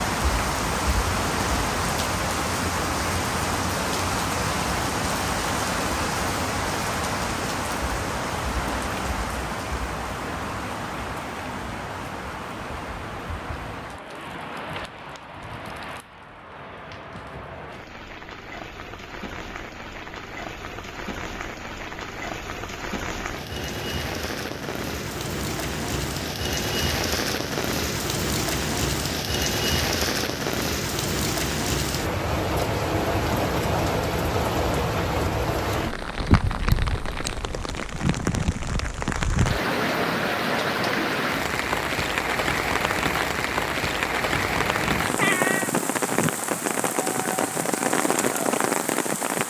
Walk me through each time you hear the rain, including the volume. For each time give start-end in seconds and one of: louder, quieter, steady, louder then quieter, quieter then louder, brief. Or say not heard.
0.0-49.4 quieter then louder.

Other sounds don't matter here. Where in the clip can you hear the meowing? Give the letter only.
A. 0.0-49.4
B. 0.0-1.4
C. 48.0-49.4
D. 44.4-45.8
D.